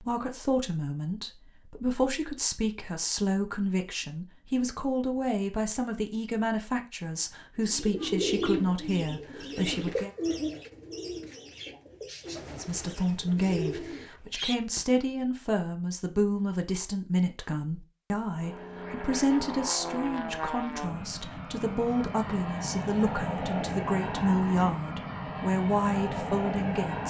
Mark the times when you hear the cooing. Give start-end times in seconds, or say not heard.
7.6-14.8.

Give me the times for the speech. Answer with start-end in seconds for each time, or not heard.
0.0-10.1, 12.5-27.0.